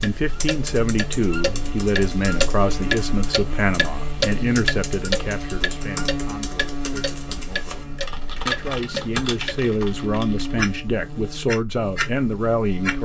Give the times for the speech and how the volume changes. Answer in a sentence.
You can hear the speech from 0.0 to 13.0 s, getting quieter then louder.